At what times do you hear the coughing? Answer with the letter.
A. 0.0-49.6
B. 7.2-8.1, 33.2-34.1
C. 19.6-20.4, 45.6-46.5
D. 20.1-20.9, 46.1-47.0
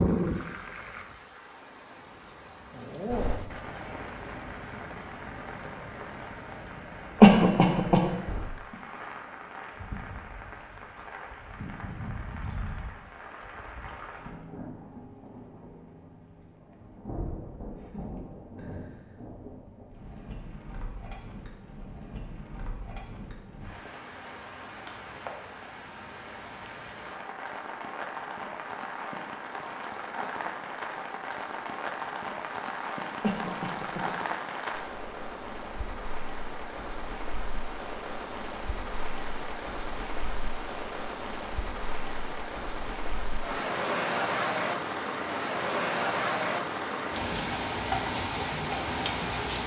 B.